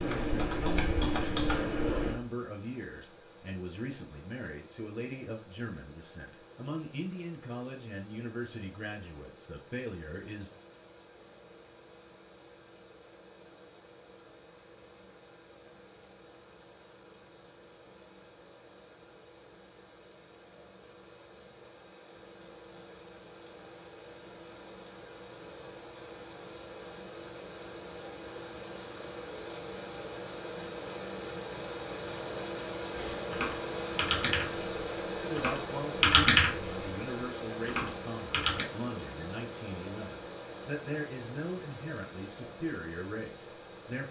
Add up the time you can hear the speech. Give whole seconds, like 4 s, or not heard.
19 s.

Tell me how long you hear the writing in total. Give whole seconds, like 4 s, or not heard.
not heard.